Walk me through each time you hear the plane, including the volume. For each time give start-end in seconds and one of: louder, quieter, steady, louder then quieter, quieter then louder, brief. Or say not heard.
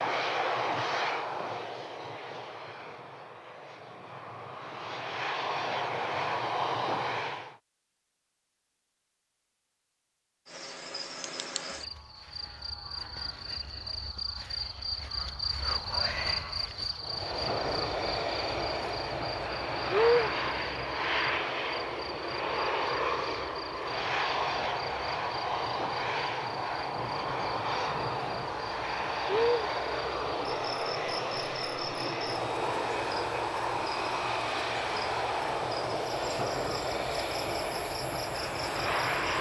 0.0-7.5 quieter then louder
17.0-39.3 steady.